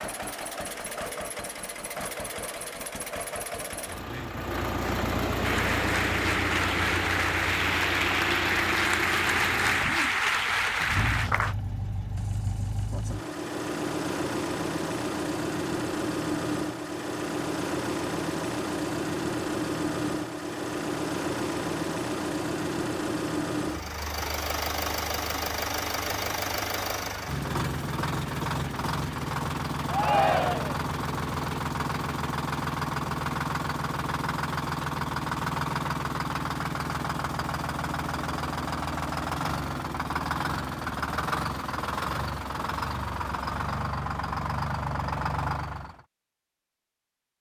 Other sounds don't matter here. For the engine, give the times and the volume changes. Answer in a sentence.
The engine can be heard from 0.0 to 46.0 s, at a steady volume.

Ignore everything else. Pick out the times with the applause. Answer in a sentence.
You can hear the applause from 5.4 to 11.6 s.